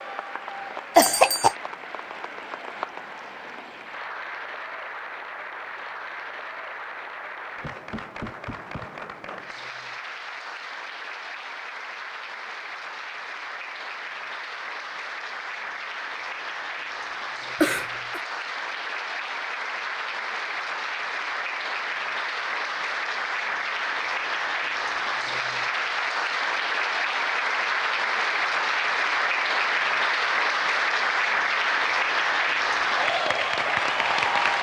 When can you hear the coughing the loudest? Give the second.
1 s.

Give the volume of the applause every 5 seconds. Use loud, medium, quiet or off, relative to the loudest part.
quiet, quiet, quiet, medium, medium, loud, loud.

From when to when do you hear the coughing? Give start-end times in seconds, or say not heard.
0.9-1.6, 17.6-18.2.